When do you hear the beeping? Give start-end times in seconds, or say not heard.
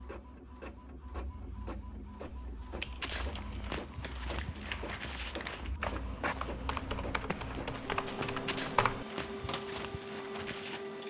not heard.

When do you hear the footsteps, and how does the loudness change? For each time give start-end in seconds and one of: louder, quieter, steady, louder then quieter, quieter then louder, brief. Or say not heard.
2.7-10.9 steady.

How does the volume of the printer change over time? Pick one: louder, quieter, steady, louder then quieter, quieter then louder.
louder.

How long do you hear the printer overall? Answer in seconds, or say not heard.
11 s.